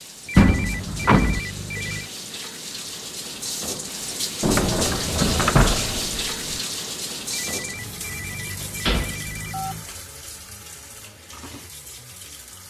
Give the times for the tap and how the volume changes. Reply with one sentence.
You can hear the tap from 0.0 to 12.6 s, getting louder then quieter.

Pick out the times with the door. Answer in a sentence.
The door can be heard from 0.3 to 1.4 s, from 4.4 to 6.6 s and from 8.8 to 9.3 s.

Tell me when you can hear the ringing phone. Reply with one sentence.
The ringing phone can be heard from 0.2 to 2.1 s and from 7.3 to 9.8 s.